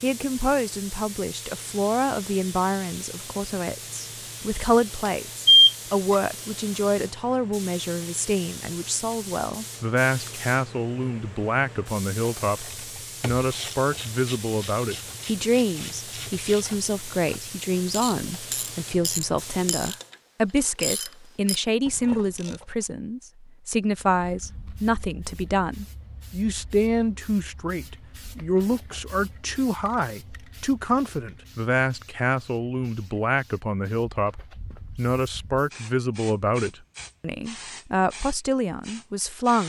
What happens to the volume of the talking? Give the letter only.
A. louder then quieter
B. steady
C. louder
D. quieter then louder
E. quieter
B.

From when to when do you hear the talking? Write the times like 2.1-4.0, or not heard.
0.0-39.6.